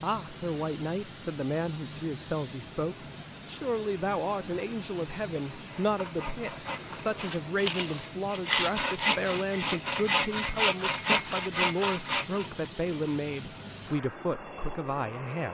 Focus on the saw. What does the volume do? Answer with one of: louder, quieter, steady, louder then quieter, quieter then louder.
louder.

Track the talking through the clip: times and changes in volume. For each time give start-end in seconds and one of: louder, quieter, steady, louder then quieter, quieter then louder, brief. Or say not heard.
0.0-15.5 steady.